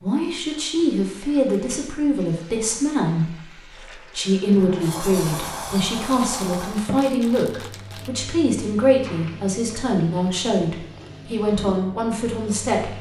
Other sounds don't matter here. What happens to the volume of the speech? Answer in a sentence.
The loudness of the speech stays about the same.